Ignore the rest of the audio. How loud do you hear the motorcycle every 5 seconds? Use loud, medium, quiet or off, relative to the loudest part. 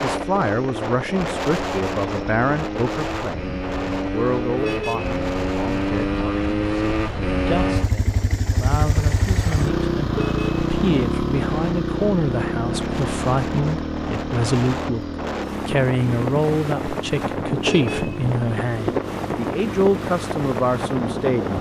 medium, loud, loud, medium, medium.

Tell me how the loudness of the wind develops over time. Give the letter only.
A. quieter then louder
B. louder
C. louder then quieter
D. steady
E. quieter
A.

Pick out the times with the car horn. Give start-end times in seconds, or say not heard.
4.5-5.2, 10.1-10.7, 17.6-18.1.